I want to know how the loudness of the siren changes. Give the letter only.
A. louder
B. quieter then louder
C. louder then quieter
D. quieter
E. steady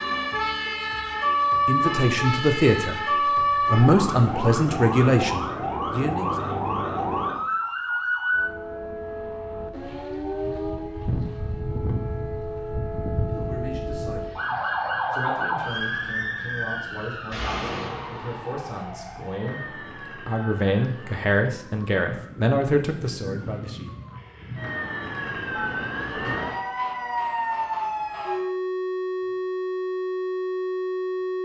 B.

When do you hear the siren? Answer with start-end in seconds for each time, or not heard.
0.0-31.3.